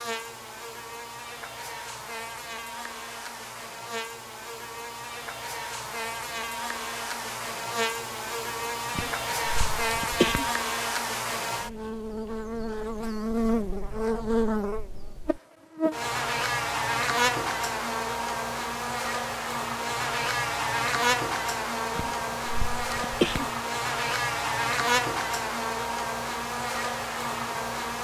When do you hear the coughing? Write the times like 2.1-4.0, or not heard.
8.9-10.5, 21.9-23.5.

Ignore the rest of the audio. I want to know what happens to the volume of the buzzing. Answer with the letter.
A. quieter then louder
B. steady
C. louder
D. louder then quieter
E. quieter
C.